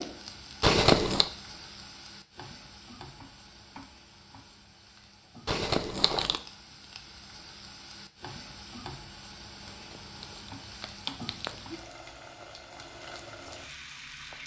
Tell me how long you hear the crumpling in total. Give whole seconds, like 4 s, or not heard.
4 s.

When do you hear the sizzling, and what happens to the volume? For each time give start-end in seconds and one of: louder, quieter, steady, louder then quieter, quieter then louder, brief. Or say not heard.
0.0-14.4 quieter then louder.